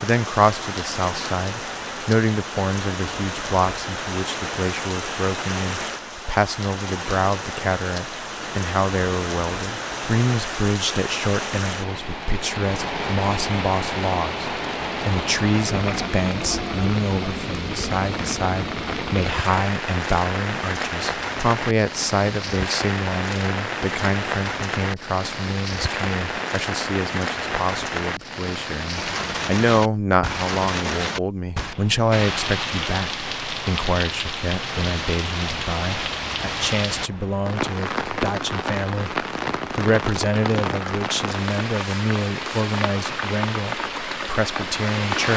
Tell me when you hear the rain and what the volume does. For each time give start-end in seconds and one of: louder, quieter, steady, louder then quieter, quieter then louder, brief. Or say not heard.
0.0-45.3 steady.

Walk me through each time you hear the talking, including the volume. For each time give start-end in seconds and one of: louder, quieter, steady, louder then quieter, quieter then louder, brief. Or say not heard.
0.0-45.3 steady.